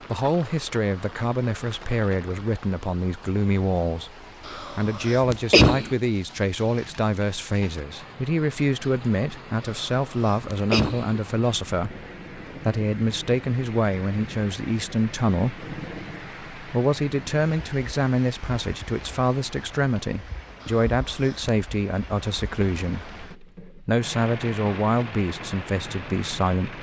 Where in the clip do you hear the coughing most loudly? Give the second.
6 s.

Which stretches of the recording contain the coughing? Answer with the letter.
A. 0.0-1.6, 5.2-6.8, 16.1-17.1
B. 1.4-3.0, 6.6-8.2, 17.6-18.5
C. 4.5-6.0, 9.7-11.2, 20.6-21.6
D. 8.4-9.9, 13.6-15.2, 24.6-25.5
C.